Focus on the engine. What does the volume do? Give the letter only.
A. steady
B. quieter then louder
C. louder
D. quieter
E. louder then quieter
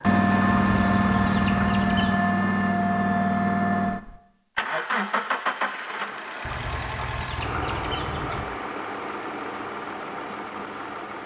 D.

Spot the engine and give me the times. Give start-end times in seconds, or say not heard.
0.0-11.2.